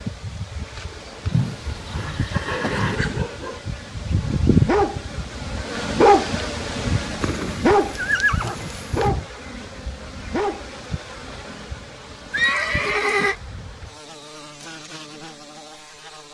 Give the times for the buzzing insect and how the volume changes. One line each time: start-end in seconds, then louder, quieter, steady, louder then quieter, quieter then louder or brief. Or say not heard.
0.0-16.2 louder then quieter.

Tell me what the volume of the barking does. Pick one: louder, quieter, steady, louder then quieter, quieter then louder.
louder then quieter.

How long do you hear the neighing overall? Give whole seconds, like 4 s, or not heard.
5 s.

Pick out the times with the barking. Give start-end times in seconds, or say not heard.
2.4-11.6.